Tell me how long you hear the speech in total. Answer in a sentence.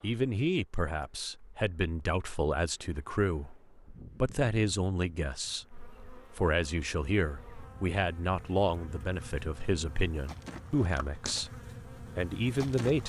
You can hear the speech for 12 seconds altogether.